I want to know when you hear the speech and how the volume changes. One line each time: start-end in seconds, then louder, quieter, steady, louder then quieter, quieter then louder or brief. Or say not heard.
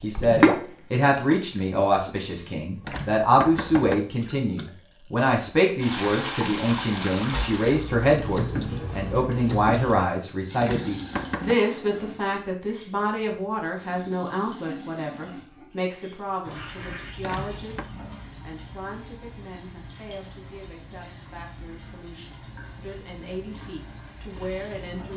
0.0-25.1 quieter.